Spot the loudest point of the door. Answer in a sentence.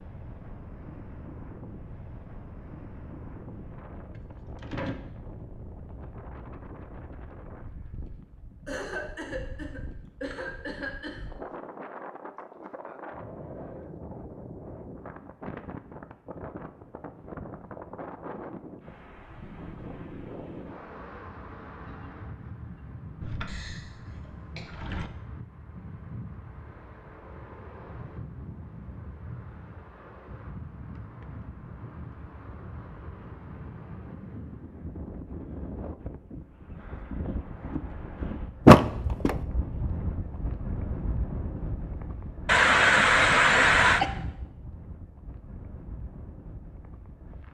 The loudest moment of the door is at 39 seconds.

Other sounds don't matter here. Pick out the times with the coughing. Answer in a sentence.
You can hear the coughing from 8.7 to 11.2 s, from 23.4 to 24.6 s and from 42.5 to 44.0 s.